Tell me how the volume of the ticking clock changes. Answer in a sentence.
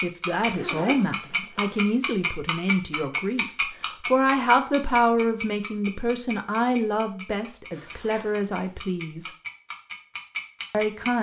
The volume of the ticking clock goes down, then up.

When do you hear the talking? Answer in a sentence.
You can hear the talking from 0.0 to 9.3 s and from 10.7 to 11.1 s.